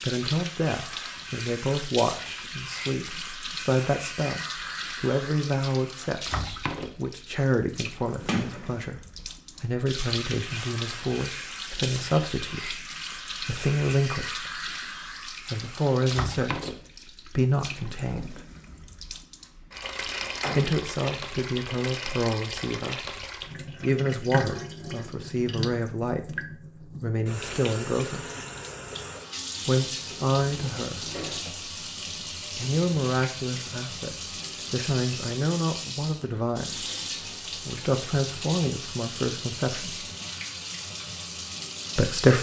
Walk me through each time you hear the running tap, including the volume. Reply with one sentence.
The running tap can be heard from 0.0 to 42.3 s, at a steady volume.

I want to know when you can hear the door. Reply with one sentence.
The door can be heard from 8.2 to 8.8 s, from 20.1 to 20.8 s and from 30.1 to 31.4 s.